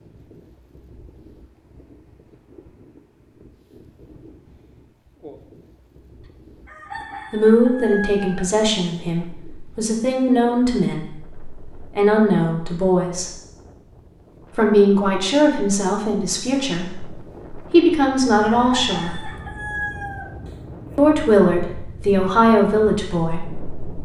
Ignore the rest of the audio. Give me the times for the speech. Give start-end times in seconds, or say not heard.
7.3-13.3, 14.6-19.3, 20.9-23.8.